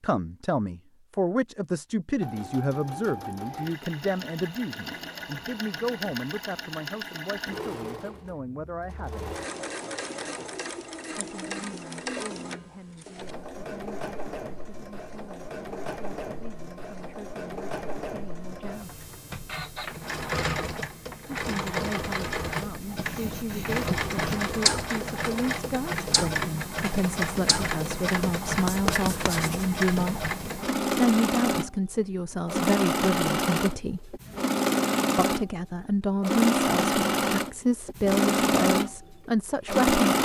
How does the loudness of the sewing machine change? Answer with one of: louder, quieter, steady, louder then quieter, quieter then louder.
louder.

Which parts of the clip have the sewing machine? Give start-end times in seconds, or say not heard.
2.2-40.2.